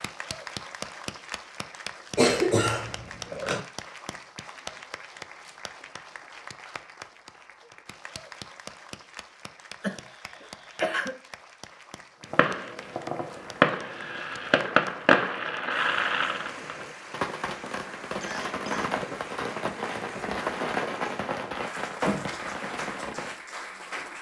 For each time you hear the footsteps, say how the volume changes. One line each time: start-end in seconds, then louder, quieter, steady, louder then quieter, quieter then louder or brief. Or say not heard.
not heard.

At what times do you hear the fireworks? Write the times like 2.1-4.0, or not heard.
12.3-23.4.